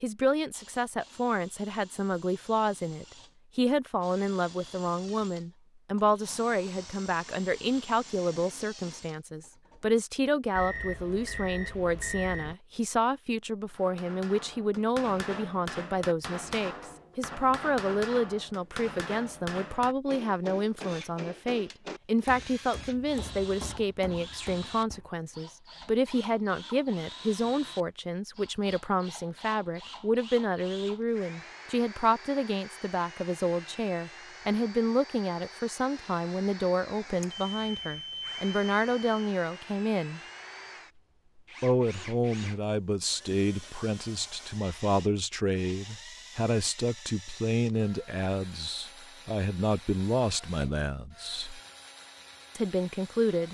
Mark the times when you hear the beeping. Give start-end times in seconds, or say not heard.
10.6-12.6, 37.2-39.3.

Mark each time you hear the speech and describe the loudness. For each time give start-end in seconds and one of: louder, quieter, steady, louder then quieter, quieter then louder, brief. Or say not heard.
0.0-40.2 steady
41.6-51.6 steady
52.5-53.4 brief.